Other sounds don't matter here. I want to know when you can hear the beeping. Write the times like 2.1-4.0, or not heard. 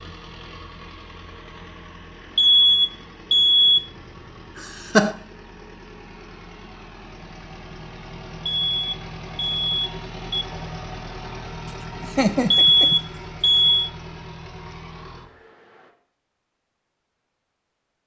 2.4-3.9, 8.4-10.4, 12.5-13.9.